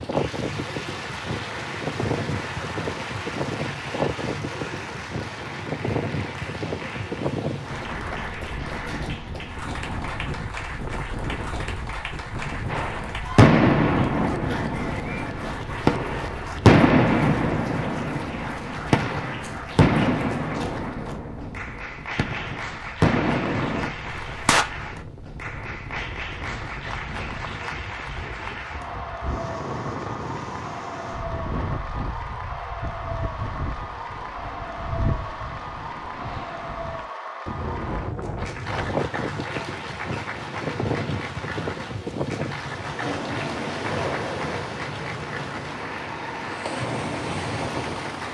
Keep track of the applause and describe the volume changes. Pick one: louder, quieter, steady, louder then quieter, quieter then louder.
steady.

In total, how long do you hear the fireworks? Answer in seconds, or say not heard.
12 s.